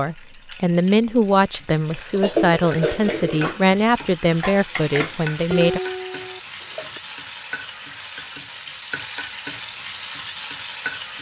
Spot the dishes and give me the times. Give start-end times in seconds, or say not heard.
2.1-7.0.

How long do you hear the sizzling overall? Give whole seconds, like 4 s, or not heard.
11 s.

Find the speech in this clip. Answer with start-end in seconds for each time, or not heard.
0.0-5.8.